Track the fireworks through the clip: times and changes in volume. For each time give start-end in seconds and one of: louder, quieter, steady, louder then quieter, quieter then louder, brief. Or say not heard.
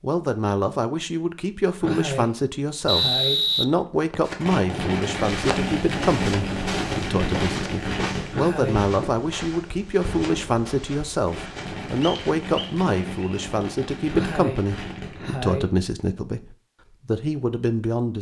4.2-15.3 quieter.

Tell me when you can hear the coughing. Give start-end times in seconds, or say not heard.
1.8-3.4, 8.3-8.8, 14.1-15.7.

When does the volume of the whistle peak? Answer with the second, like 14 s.
3 s.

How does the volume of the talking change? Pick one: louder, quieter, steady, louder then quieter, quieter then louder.
steady.